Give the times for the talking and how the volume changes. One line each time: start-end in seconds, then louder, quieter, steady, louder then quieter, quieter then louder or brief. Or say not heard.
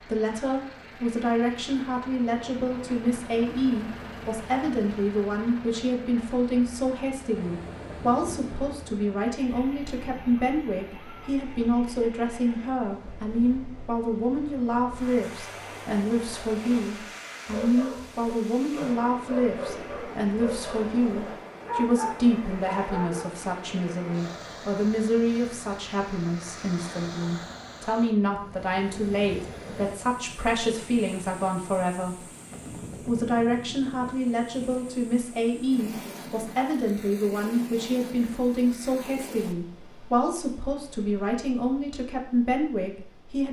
0.0-43.4 steady.